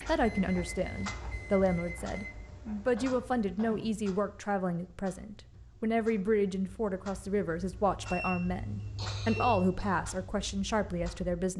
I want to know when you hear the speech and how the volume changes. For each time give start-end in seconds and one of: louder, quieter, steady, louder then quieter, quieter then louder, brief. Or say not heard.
0.1-11.5 steady.